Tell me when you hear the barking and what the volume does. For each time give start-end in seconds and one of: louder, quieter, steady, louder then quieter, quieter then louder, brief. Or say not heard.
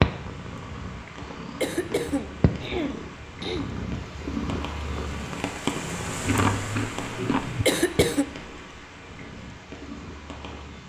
not heard.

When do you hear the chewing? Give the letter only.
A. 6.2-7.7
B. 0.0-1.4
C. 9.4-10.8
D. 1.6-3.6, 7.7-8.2
A.